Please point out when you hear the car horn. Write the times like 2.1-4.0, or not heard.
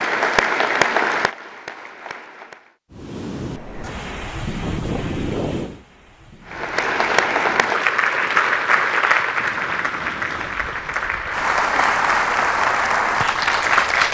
not heard.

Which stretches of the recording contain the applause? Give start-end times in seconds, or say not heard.
0.0-2.8, 6.5-14.0.